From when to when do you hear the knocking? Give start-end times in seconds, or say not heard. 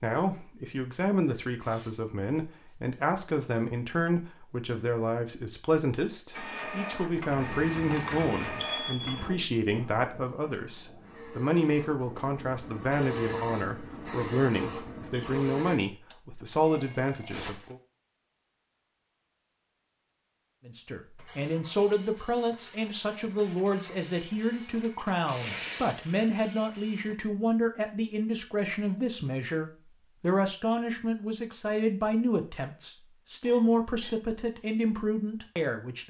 not heard.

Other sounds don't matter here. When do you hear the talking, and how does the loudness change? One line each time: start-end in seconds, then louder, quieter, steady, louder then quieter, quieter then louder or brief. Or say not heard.
0.0-17.8 steady
20.6-36.0 steady.